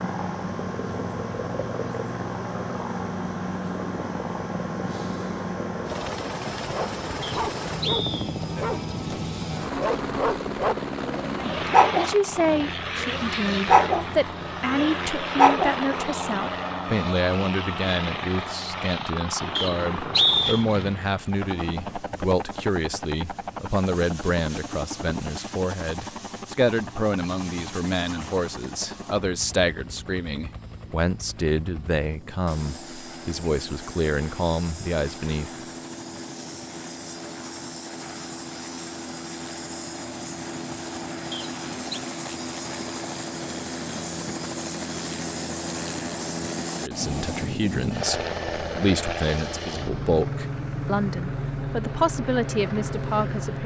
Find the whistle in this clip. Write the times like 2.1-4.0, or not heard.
7.2-8.3, 19.6-20.6, 41.3-42.0.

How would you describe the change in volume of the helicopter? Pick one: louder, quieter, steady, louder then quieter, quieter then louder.
quieter then louder.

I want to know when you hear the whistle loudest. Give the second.
20 s.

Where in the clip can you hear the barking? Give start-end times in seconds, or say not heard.
6.7-15.8.